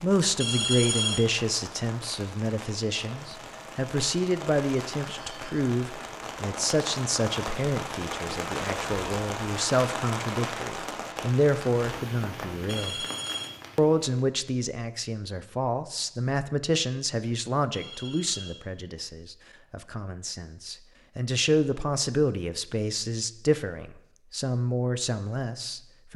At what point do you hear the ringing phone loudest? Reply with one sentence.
The volume of the ringing phone peaks at 1 second.